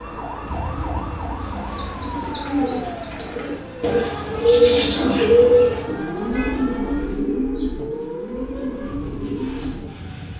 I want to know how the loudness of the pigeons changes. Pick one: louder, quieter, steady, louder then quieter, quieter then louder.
louder then quieter.